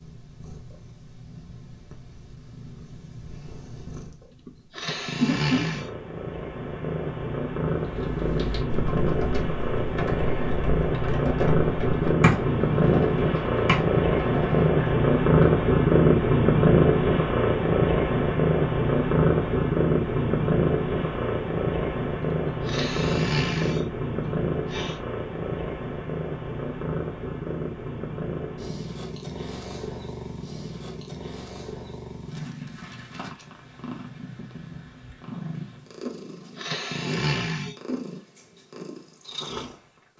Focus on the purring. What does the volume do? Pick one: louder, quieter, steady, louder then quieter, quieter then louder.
louder then quieter.